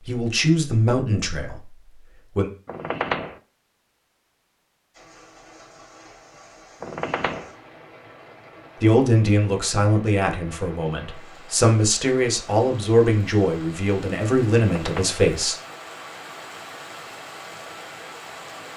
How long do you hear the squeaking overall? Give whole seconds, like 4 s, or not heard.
2 s.